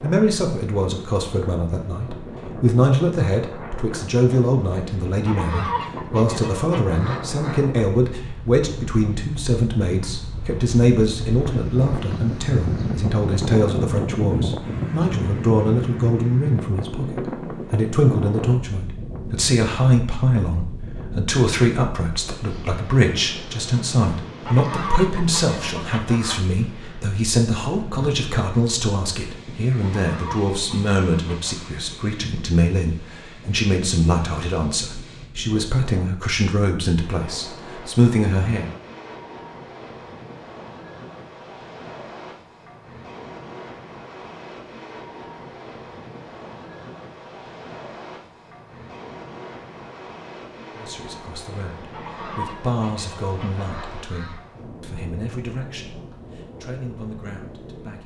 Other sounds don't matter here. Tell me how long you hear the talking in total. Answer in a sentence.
The talking can be heard for 46 seconds in total.